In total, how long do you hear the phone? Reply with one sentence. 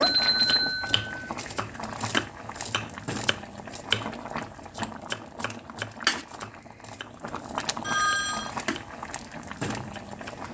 The phone can be heard for 2 seconds in total.